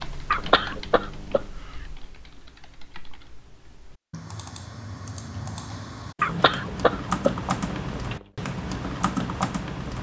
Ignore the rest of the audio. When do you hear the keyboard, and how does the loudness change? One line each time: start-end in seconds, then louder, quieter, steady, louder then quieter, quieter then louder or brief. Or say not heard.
0.0-9.9 quieter then louder.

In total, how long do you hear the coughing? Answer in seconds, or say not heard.
3 s.